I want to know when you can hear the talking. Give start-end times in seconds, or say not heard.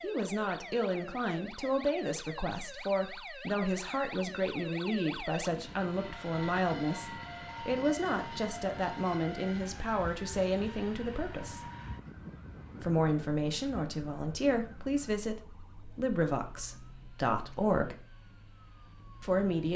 0.0-11.7, 12.8-18.1, 19.2-19.7.